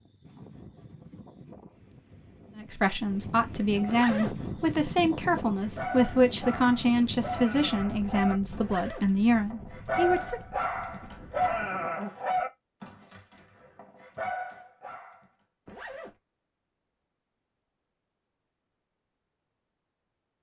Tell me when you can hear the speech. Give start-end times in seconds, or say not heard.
2.5-10.4.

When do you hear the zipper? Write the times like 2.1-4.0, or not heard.
3.9-4.4, 8.6-9.1, 15.7-16.1.